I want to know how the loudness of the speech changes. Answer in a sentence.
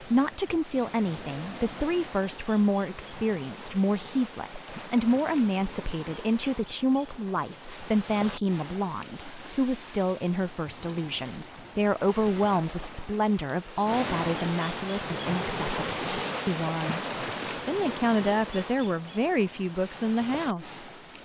The volume of the speech stays about the same.